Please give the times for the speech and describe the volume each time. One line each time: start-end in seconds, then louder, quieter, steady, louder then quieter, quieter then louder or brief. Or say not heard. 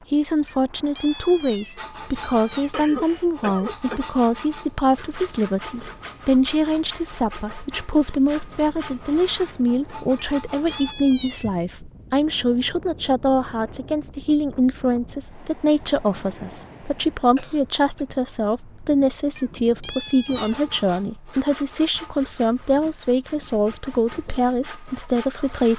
0.1-25.7 steady.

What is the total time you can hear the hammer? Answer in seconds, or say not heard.
not heard.